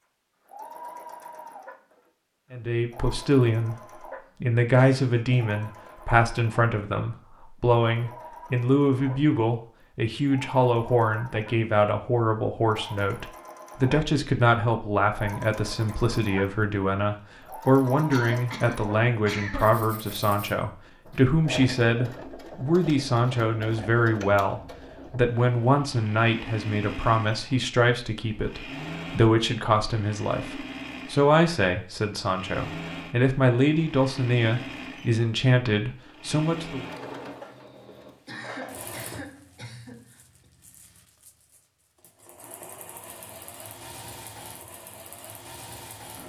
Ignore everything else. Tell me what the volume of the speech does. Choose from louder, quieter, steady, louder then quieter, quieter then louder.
steady.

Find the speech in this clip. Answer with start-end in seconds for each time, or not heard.
2.5-36.9.